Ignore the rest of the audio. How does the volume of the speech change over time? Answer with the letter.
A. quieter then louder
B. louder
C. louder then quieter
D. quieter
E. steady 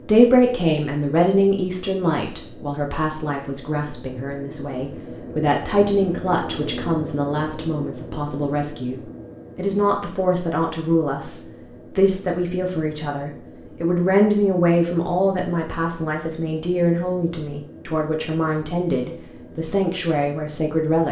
E.